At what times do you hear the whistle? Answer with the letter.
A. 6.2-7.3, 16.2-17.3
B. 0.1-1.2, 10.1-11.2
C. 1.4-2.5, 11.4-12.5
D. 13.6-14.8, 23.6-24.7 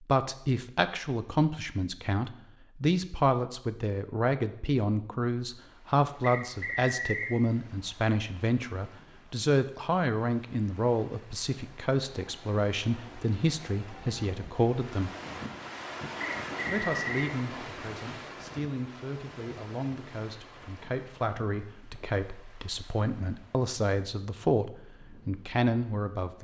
A.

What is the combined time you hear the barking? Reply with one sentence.
You can't hear the barking here.